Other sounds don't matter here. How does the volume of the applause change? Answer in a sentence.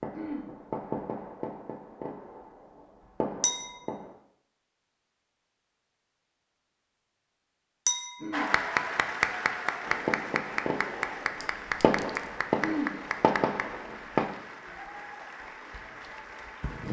The volume of the applause goes down.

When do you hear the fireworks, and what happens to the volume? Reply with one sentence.
The fireworks can be heard from 0.0 to 4.2 s, getting quieter then louder; and from 9.8 to 14.3 s, getting quieter then louder.